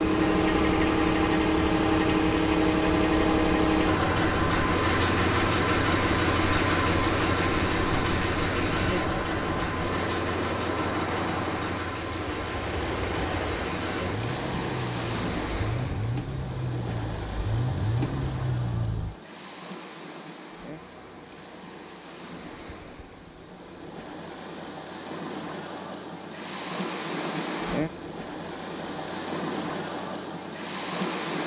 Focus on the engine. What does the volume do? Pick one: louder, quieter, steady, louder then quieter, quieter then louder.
quieter.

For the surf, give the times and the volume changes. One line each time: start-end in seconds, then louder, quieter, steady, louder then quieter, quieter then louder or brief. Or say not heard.
0.0-31.4 quieter then louder.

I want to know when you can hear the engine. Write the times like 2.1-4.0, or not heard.
0.0-19.1.